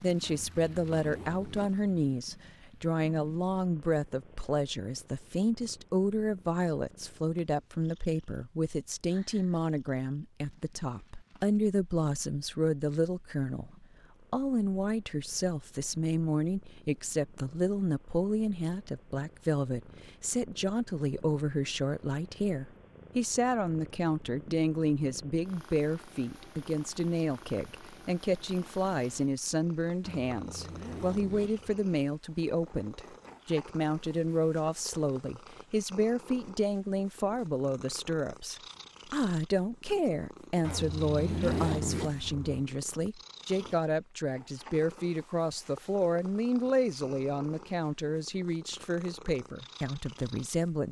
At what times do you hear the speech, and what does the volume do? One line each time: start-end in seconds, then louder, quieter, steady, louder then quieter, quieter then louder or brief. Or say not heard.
0.0-50.8 steady.